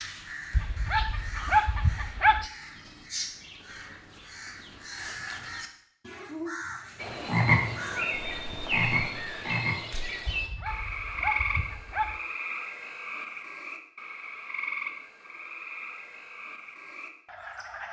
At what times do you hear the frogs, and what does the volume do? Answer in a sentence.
You can hear the frogs from 7.0 to 17.8 s, getting quieter.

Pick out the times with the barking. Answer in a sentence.
You can hear the barking from 0.5 to 2.5 s and from 10.2 to 12.2 s.